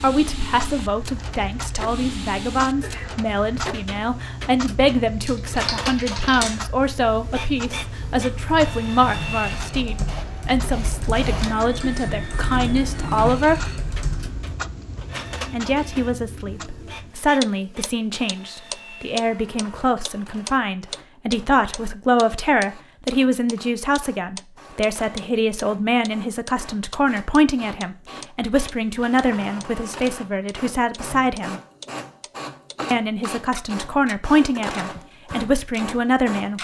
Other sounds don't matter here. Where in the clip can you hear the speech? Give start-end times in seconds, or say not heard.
0.0-13.6, 15.5-31.6, 32.9-36.5.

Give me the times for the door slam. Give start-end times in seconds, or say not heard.
not heard.